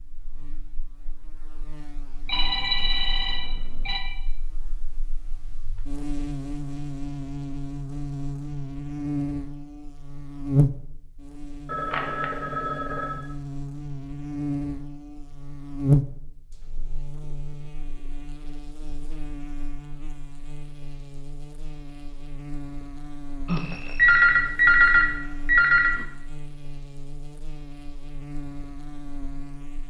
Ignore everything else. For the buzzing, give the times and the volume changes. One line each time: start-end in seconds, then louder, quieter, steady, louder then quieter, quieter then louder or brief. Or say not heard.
0.0-29.8 louder then quieter.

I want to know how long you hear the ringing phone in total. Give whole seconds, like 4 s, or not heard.
6 s.